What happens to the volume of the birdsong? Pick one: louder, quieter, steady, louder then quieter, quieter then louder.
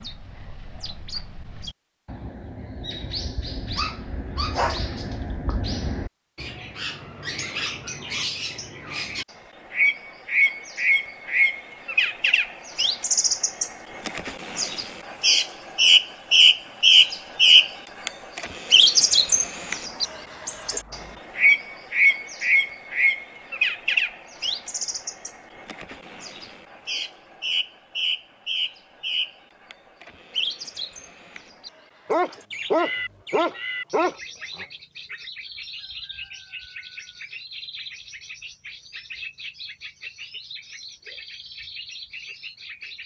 louder then quieter.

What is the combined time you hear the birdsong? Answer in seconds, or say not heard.
43 s.